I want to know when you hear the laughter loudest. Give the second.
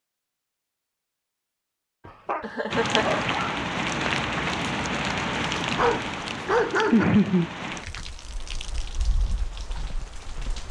7 s.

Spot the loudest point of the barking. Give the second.
7 s.